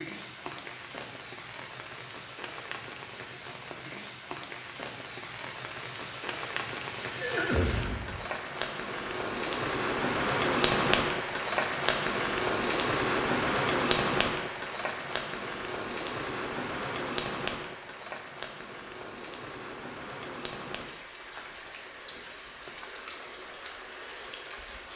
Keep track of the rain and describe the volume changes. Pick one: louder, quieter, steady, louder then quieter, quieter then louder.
louder then quieter.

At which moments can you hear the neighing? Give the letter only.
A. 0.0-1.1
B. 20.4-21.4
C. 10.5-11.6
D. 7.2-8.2
D.